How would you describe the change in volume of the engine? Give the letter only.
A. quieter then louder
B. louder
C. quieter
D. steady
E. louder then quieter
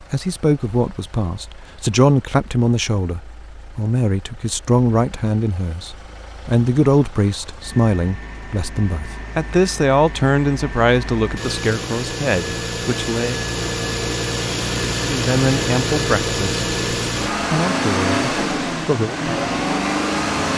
B.